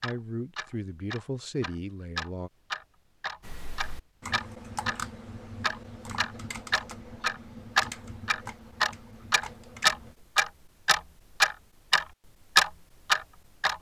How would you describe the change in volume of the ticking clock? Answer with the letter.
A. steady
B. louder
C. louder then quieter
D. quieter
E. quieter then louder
B.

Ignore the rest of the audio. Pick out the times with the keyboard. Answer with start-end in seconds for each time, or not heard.
3.4-10.2.